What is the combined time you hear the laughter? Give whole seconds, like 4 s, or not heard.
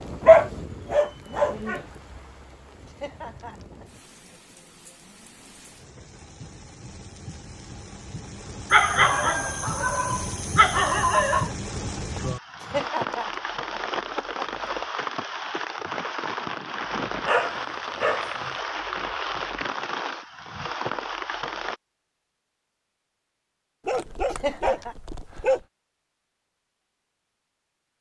4 s.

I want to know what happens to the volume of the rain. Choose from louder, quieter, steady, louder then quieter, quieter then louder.
louder.